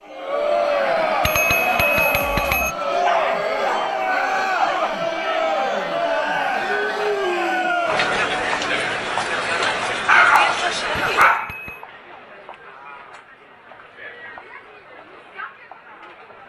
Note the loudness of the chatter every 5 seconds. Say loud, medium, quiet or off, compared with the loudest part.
loud, loud, medium, quiet.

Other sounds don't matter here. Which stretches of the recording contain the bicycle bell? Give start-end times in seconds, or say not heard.
1.2-2.8, 11.2-11.8.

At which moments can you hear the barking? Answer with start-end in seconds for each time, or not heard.
2.9-4.9, 10.1-11.5.